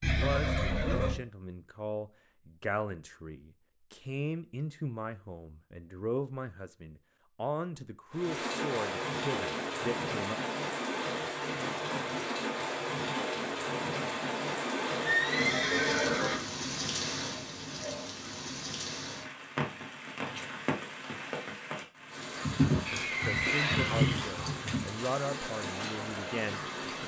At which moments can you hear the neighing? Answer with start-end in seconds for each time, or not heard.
0.0-1.1, 15.0-16.4, 22.9-24.5.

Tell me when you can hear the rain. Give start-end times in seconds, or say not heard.
8.1-27.0.